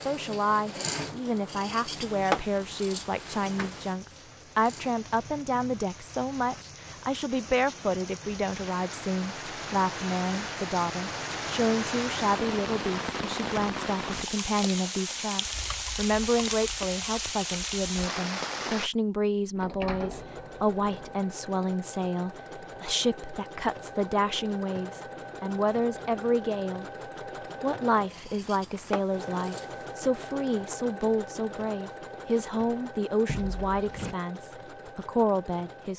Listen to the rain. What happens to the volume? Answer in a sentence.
The volume of the rain goes up.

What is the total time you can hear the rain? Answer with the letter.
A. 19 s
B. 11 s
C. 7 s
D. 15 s
A.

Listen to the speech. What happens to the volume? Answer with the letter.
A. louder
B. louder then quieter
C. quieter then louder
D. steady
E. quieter
D.